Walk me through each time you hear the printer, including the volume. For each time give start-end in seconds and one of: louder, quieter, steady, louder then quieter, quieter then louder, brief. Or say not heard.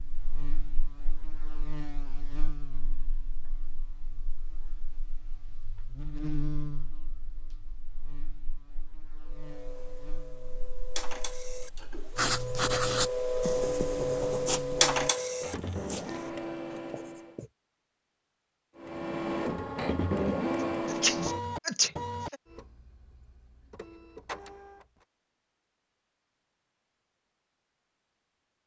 9.2-17.4 louder then quieter
18.8-25.1 quieter then louder.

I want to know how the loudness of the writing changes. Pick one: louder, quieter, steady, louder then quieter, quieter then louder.
quieter.